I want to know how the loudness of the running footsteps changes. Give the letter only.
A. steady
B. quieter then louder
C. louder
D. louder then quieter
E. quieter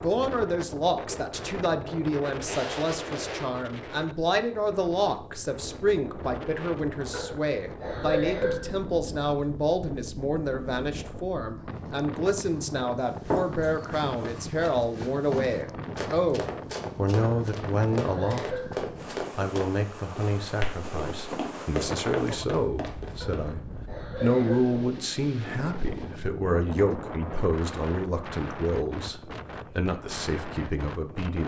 A.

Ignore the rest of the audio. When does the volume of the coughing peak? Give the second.
8 s.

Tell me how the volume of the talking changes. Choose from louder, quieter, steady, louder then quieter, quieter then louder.
steady.